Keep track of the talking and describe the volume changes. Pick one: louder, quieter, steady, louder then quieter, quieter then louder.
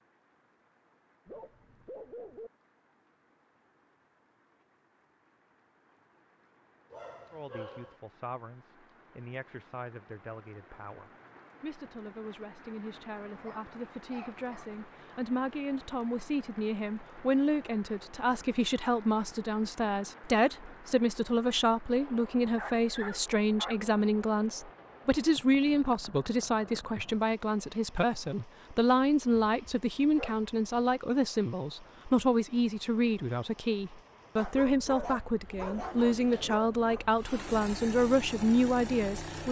louder.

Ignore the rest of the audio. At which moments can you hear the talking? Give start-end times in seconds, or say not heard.
7.3-39.4.